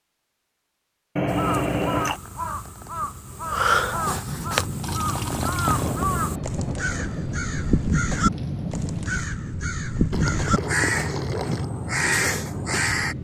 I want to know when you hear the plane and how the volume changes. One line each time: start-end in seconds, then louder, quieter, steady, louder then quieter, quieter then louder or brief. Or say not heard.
4.2-13.1 steady.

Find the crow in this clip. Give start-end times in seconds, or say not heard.
1.2-13.1.